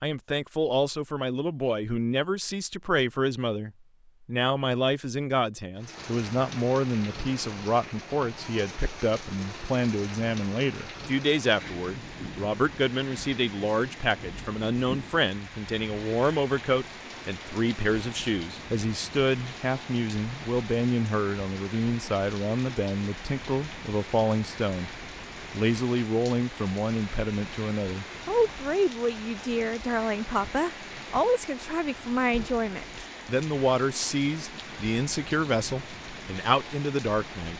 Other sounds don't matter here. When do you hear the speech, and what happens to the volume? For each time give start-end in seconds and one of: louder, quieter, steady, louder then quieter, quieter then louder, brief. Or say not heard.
0.0-37.5 steady.